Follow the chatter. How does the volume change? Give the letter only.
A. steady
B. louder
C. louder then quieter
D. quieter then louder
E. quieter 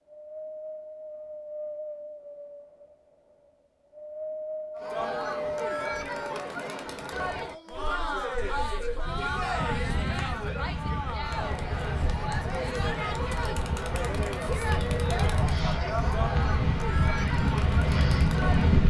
A.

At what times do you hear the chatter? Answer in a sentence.
You can hear the chatter from 4.8 to 18.8 s.